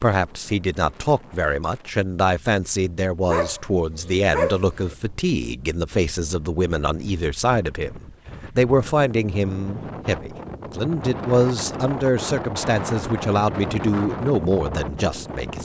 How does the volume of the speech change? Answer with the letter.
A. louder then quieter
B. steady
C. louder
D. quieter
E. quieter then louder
B.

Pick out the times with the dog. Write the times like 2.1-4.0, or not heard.
3.2-5.0.